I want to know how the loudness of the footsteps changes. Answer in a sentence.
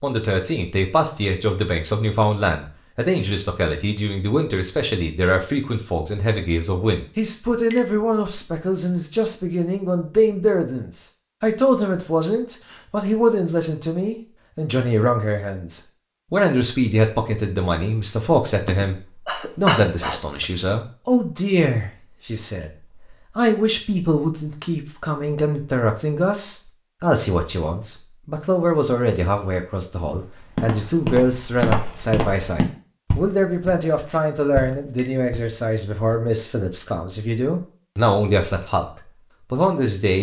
The loudness of the footsteps goes down.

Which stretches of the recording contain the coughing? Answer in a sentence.
You can hear the coughing from 18.6 to 20.4 s.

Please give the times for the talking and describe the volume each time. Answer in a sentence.
You can hear the talking from 0.0 to 22.7 s, at a steady volume; and from 23.4 to 40.1 s, at a steady volume.